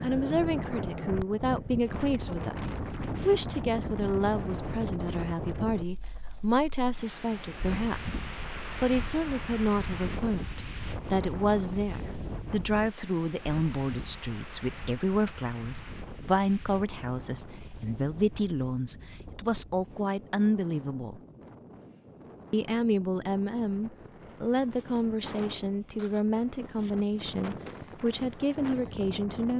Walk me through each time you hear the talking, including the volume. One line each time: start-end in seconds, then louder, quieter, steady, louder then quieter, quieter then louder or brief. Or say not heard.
0.0-21.2 steady
22.5-29.5 steady.